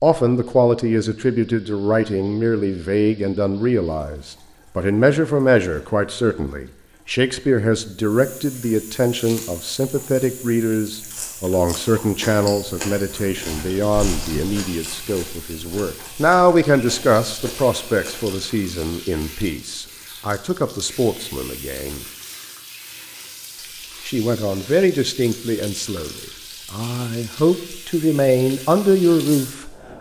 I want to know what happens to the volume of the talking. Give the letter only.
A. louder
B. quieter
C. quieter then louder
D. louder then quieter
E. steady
E.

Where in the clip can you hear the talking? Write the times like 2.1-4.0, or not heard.
0.0-22.1, 24.1-29.8.